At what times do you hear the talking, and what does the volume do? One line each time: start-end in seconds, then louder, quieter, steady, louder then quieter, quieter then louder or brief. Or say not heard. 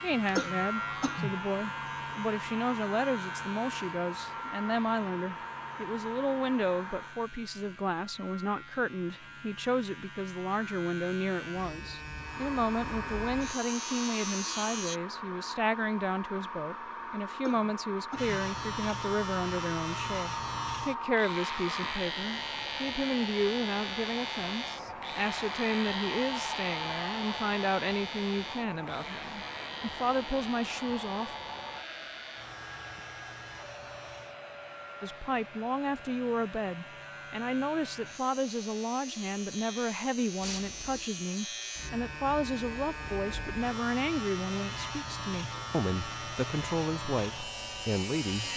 0.0-31.4 steady
35.0-48.5 steady.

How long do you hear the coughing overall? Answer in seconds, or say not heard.
3 s.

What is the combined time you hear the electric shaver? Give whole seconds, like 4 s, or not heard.
45 s.